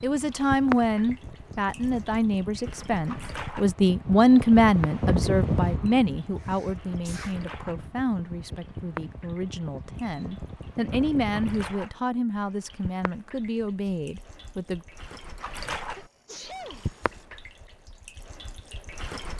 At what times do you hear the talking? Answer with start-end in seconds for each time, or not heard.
0.0-14.8.